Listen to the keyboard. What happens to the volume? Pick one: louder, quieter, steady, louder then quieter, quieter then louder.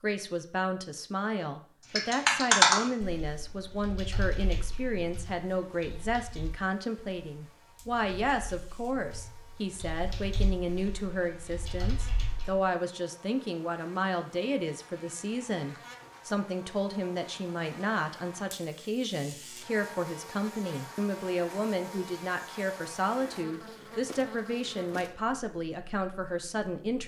quieter then louder.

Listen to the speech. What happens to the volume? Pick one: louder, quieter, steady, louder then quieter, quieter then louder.
steady.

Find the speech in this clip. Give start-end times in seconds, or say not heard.
0.0-27.0.